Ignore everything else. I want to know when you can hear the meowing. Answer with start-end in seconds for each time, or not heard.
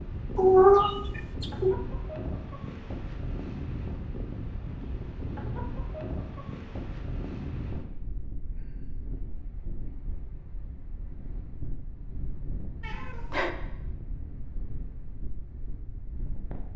0.3-1.8, 12.8-13.5.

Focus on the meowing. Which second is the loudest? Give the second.
1 s.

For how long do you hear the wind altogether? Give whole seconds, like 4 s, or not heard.
17 s.